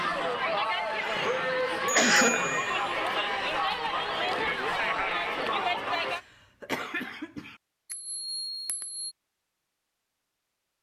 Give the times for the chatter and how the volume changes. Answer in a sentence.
The chatter can be heard from 0.0 to 6.2 s, at a steady volume.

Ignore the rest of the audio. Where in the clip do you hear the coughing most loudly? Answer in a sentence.
The volume of the coughing peaks at 2 seconds.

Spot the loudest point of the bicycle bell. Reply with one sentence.
The loudest moment of the bicycle bell is at 2 seconds.